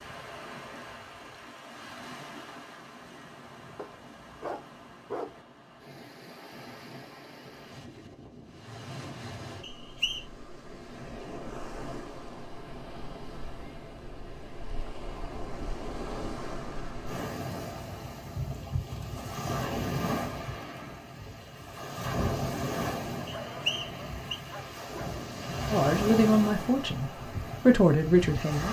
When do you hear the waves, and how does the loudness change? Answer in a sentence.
You can hear the waves from 0.0 to 28.6 s, getting louder.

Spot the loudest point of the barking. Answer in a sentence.
The volume of the barking peaks at 5 seconds.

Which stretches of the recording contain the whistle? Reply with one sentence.
You can hear the whistle from 9.6 to 10.2 s and from 23.2 to 24.4 s.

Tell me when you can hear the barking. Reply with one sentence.
The barking can be heard from 3.8 to 5.4 s and from 23.3 to 25.2 s.